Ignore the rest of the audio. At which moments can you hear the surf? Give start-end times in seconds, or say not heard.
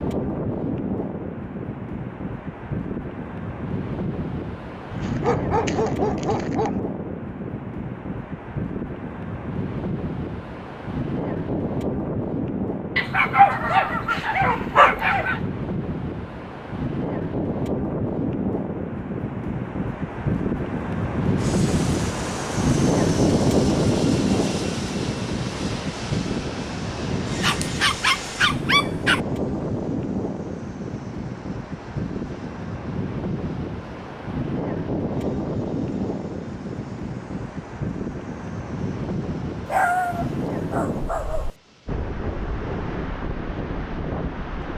0.0-44.7.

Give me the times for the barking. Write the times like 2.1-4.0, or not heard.
4.9-6.8, 12.9-15.4, 27.4-29.2, 39.6-41.5.